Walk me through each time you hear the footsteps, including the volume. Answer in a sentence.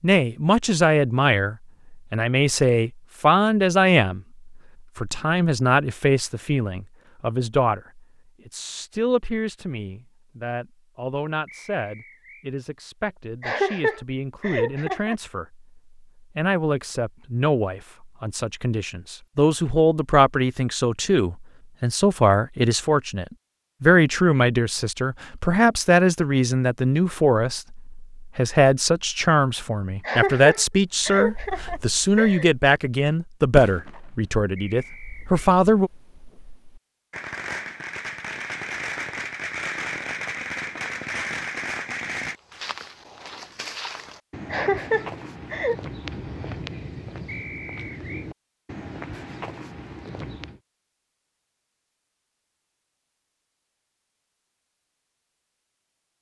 You can hear the footsteps from 42.4 to 50.6 s, at a steady volume.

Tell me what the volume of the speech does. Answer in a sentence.
The loudness of the speech goes down, then up.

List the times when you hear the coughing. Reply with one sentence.
You can hear the coughing from 13.4 to 15.2 s, from 30.0 to 32.5 s and from 44.5 to 45.8 s.